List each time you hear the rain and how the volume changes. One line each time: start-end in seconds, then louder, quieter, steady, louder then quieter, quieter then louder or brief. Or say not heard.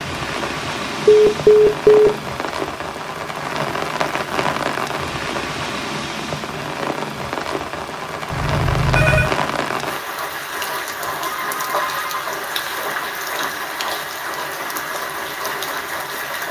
0.0-16.4 steady.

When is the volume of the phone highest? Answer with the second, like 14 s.
2 s.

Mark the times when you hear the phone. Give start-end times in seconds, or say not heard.
1.1-2.1, 8.3-9.3, 11.2-12.5.